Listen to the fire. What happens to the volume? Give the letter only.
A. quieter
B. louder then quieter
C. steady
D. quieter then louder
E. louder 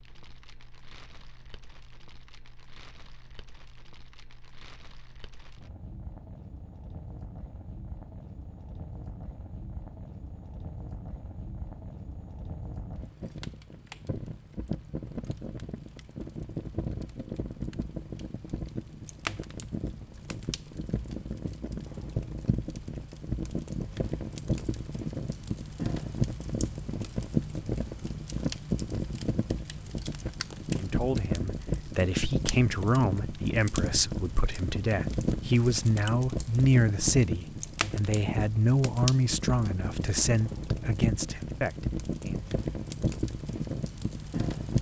E.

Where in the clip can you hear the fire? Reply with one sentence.
The fire can be heard from 0.0 to 44.7 s.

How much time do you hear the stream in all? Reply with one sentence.
You can't hear the stream here.